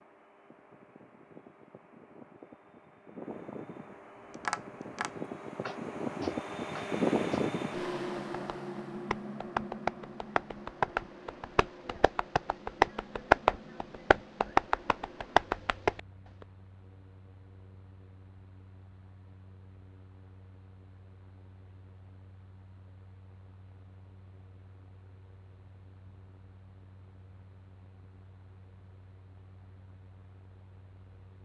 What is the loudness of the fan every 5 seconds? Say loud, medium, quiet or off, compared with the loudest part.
quiet, loud, quiet, quiet, quiet, quiet, quiet.